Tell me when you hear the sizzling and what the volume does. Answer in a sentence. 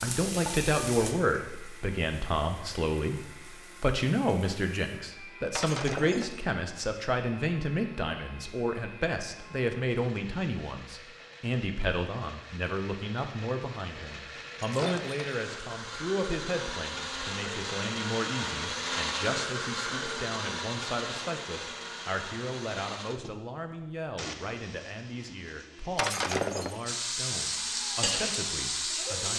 You can hear the sizzling from 0.0 to 5.1 s, getting quieter; and briefly from 26.9 to 29.3 s.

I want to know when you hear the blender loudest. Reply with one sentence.
The loudest moment of the blender is at 19 seconds.